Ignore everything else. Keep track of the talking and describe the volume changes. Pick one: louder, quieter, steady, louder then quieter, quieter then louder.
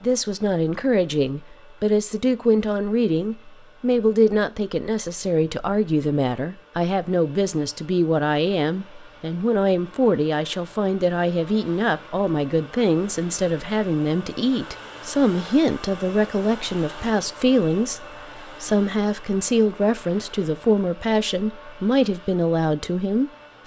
steady.